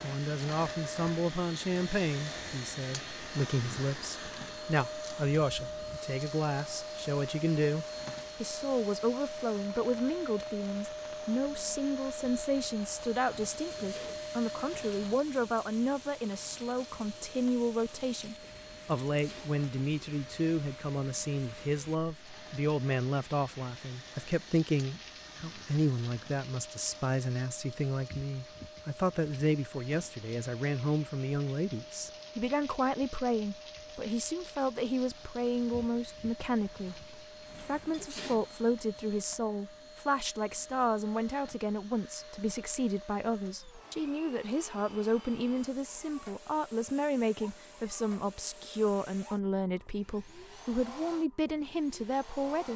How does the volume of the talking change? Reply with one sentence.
The volume of the talking stays about the same.